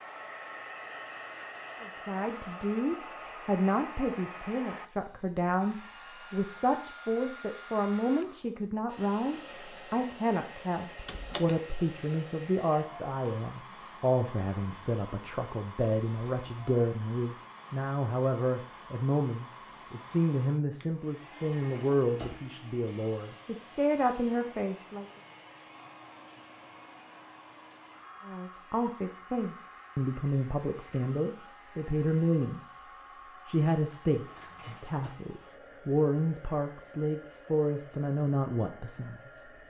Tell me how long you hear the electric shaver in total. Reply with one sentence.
The electric shaver can't be heard in this clip.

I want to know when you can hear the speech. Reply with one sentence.
The speech can be heard from 1.8 to 25.1 s, from 28.2 to 32.8 s and from 33.5 to 39.5 s.